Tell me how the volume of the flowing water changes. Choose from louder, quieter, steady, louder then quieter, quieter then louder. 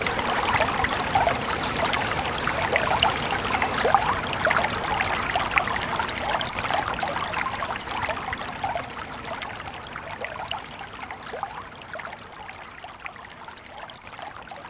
quieter.